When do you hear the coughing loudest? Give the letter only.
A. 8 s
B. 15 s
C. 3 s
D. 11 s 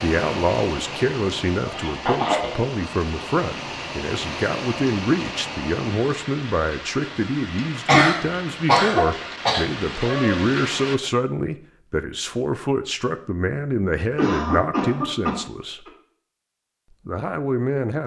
A.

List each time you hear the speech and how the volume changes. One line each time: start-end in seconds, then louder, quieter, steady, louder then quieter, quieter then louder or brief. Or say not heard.
0.0-15.8 steady
17.1-18.0 brief.